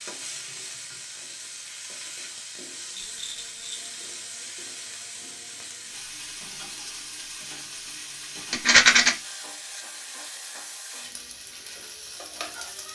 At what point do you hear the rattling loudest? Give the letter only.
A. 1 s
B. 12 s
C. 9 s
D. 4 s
C.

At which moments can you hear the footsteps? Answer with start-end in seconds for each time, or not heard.
not heard.